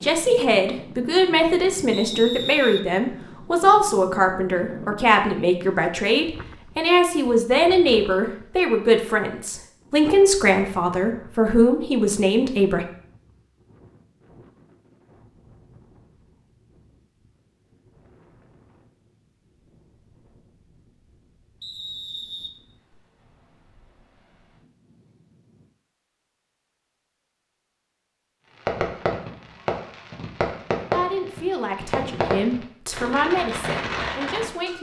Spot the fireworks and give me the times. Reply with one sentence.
The fireworks can be heard from 28.6 to 34.7 s.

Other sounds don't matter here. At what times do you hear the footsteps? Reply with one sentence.
You can't hear the footsteps here.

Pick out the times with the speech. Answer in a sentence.
You can hear the speech from 0.0 to 12.8 s and from 30.9 to 34.7 s.